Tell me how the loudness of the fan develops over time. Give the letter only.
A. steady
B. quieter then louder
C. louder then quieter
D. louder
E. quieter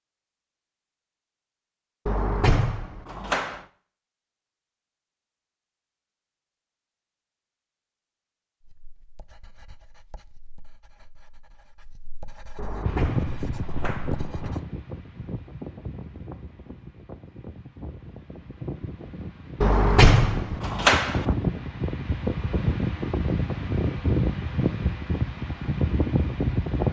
B.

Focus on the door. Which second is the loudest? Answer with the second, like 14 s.
20 s.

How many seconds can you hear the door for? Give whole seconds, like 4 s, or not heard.
5 s.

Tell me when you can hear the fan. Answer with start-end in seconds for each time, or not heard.
12.8-26.8.